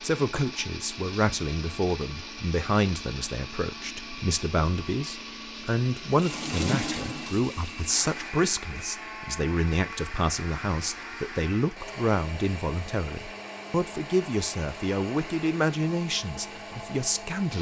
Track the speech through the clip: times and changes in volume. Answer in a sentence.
The speech can be heard from 0.0 to 17.5 s, at a steady volume.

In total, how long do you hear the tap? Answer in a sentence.
The tap can be heard for 2 seconds in total.